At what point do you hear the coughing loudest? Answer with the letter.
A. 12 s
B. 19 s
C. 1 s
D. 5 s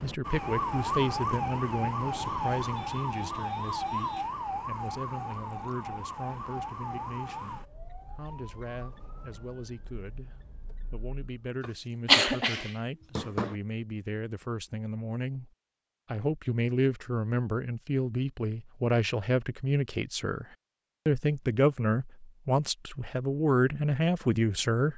A.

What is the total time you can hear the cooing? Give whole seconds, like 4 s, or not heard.
not heard.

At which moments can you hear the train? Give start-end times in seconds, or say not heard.
not heard.